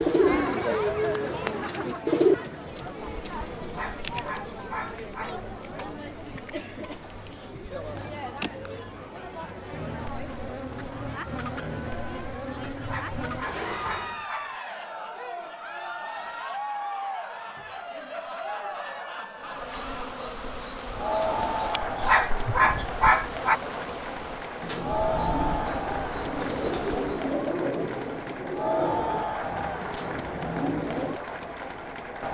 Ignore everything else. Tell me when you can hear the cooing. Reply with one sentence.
You can hear the cooing from 0.0 to 2.4 s and from 24.6 to 31.2 s.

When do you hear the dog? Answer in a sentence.
The dog can be heard from 3.5 to 5.4 s, from 12.7 to 14.6 s and from 21.8 to 23.6 s.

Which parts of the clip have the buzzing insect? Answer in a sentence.
You can hear the buzzing insect from 2.7 to 14.2 s and from 19.4 to 27.3 s.